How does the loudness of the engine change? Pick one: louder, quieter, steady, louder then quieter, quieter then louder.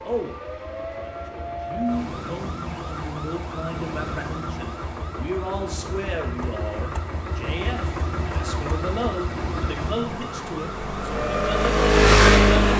louder.